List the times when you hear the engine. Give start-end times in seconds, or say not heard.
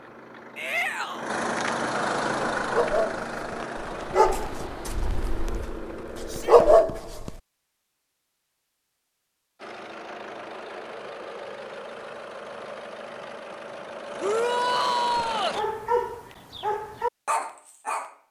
0.0-6.8, 9.6-15.7.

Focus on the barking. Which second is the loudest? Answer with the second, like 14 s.
7 s.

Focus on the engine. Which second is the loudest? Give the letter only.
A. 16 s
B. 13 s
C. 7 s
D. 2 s
D.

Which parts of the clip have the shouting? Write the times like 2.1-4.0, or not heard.
0.6-1.3, 6.2-6.7, 14.2-15.6.